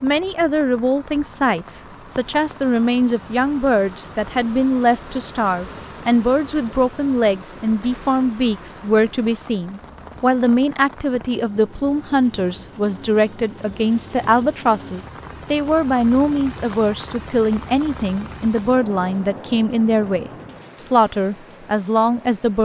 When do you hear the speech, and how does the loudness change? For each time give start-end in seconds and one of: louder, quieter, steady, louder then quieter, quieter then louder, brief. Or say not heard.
0.0-22.6 steady.